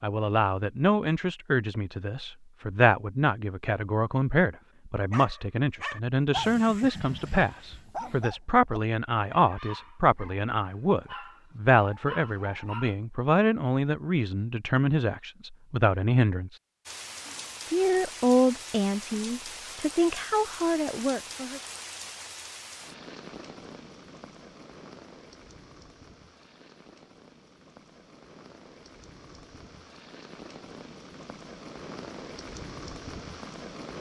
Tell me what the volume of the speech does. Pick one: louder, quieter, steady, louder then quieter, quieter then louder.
steady.